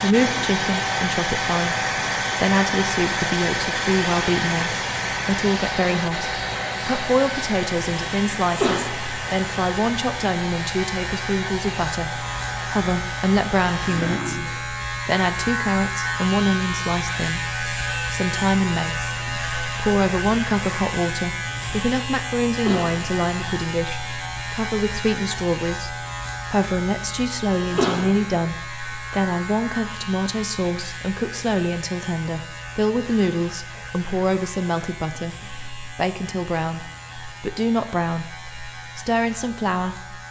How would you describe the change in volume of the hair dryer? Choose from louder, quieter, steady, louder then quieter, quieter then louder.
quieter.